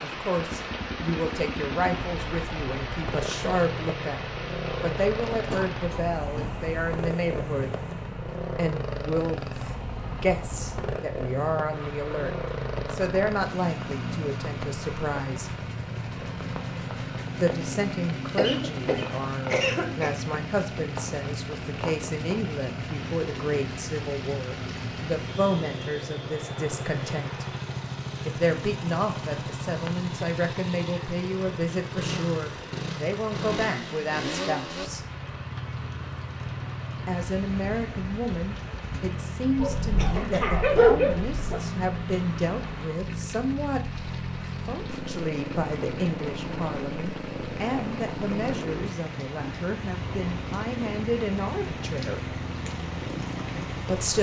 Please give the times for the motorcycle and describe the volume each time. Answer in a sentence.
You can hear the motorcycle from 0.0 to 54.1 s, at a steady volume.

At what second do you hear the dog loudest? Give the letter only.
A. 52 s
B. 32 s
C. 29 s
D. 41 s
D.